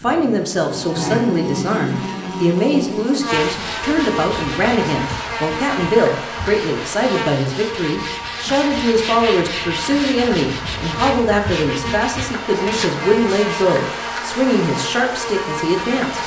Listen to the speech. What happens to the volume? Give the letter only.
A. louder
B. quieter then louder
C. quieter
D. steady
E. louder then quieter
D.